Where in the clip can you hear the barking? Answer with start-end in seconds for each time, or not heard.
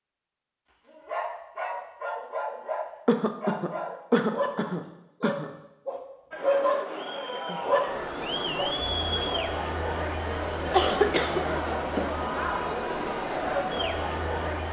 0.8-8.8.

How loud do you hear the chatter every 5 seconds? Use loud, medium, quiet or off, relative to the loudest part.
off, loud, loud.